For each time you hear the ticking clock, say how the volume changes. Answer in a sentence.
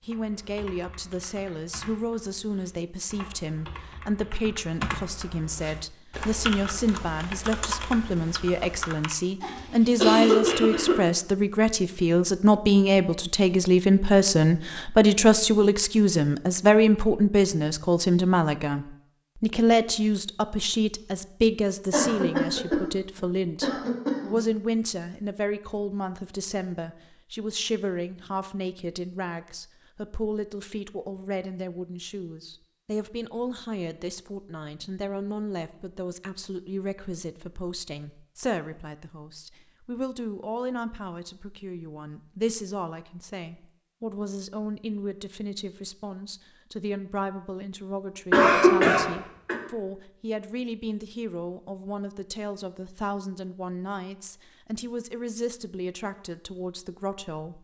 You can't hear the ticking clock here.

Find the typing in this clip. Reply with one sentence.
You can hear the typing from 0.1 to 9.2 s.